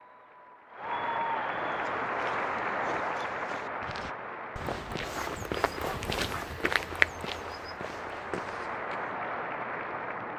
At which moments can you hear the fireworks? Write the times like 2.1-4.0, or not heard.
not heard.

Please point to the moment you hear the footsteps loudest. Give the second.
7 s.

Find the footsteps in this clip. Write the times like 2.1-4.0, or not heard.
1.6-9.2.